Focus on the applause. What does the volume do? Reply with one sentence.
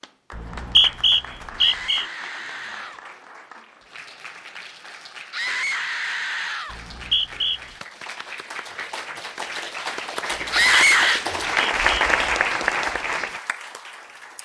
The loudness of the applause goes up.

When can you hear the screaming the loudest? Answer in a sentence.
The volume of the screaming peaks at 11 seconds.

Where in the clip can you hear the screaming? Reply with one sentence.
You can hear the screaming from 1.6 to 3.0 s, from 5.3 to 6.8 s and from 10.5 to 11.2 s.